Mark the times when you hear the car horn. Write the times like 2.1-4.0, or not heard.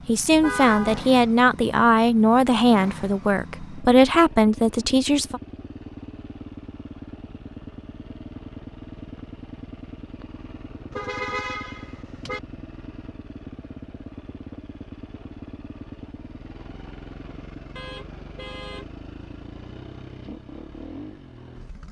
0.3-1.1, 10.9-12.4, 17.8-18.9.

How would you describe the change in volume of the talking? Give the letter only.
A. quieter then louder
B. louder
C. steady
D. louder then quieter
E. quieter
C.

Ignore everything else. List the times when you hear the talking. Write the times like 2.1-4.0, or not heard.
0.1-5.4.